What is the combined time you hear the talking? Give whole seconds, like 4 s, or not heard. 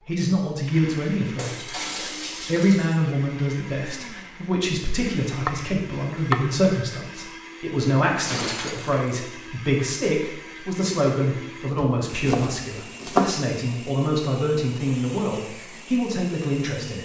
16 s.